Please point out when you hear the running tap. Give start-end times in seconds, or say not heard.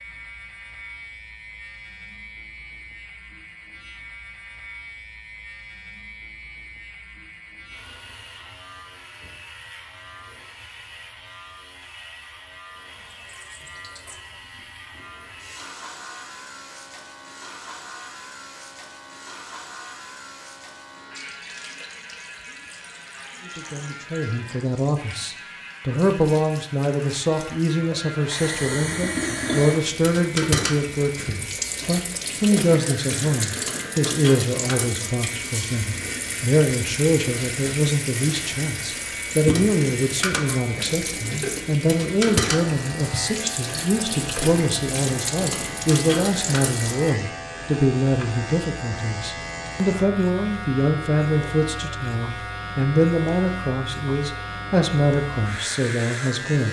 12.8-47.1.